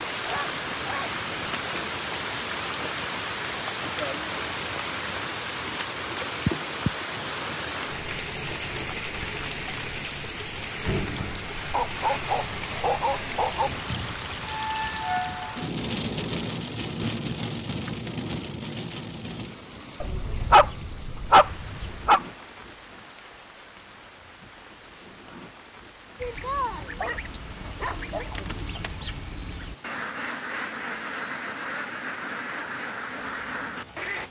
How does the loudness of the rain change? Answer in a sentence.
The volume of the rain goes down.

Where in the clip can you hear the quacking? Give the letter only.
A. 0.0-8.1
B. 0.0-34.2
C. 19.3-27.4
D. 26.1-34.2
D.